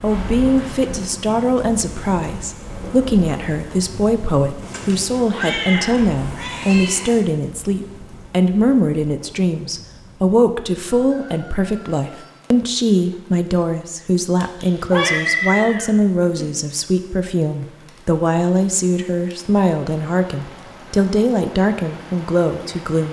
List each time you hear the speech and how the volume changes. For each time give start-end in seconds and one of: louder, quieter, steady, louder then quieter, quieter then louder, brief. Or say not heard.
0.0-23.0 steady.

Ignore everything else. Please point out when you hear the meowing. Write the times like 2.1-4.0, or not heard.
4.6-7.2, 14.6-16.5.